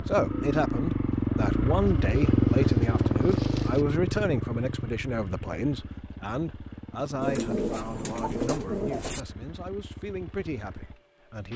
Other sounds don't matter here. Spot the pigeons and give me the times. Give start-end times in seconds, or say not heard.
1.8-3.9, 7.2-9.2.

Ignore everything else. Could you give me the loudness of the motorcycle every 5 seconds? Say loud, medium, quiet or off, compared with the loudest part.
loud, quiet, quiet.